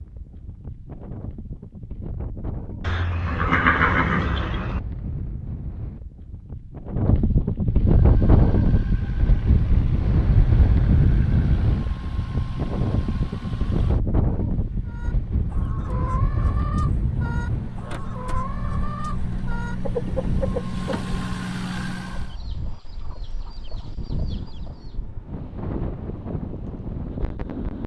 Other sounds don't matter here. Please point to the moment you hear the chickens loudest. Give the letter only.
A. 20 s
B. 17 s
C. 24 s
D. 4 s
A.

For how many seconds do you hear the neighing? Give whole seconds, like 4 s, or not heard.
2 s.